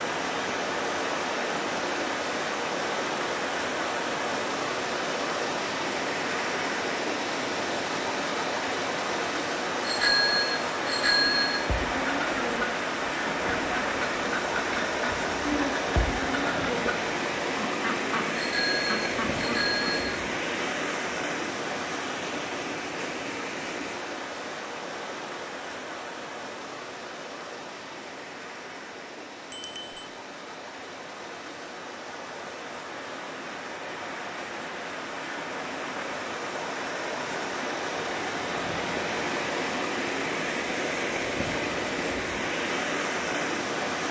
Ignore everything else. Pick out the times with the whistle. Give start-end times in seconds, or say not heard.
not heard.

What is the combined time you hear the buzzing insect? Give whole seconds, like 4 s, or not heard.
not heard.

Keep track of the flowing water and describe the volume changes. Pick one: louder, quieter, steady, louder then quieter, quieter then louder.
quieter then louder.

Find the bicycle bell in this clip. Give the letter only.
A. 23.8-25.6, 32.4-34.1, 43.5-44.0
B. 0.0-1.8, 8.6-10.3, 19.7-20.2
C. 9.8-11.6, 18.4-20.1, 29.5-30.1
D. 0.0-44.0
C.